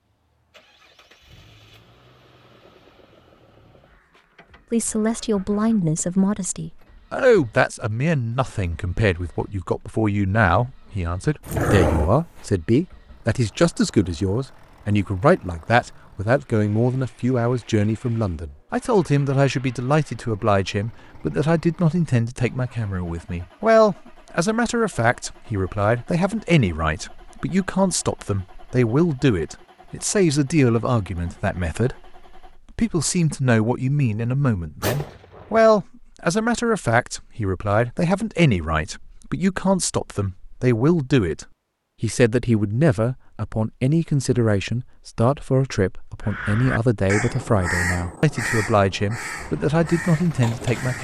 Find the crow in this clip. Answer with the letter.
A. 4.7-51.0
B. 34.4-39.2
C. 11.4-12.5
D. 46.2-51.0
D.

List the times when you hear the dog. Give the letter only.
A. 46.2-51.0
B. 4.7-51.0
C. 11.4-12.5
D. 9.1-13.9
C.